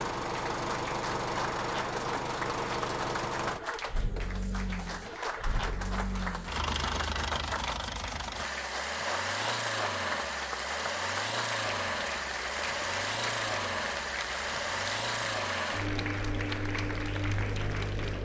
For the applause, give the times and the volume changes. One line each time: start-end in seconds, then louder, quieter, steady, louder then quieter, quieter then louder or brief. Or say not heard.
0.0-18.1 steady.